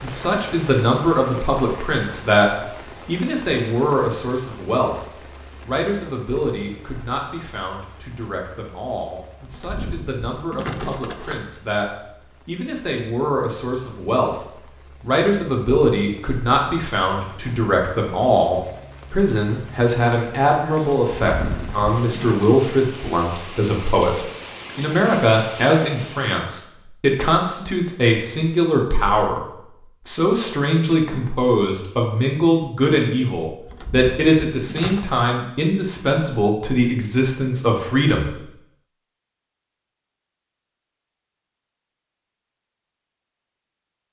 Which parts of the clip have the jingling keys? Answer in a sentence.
The jingling keys can be heard from 9.5 to 11.4 s, from 21.2 to 22.4 s and from 33.6 to 35.0 s.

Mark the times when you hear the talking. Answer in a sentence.
You can hear the talking from 0.0 to 5.0 s, from 5.7 to 14.4 s, from 15.0 to 29.4 s and from 30.1 to 38.4 s.